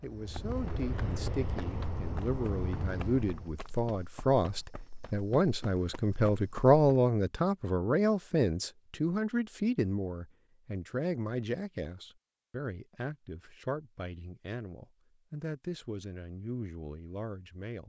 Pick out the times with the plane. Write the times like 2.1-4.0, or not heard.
0.0-3.5.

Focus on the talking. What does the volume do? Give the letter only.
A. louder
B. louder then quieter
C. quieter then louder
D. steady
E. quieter
B.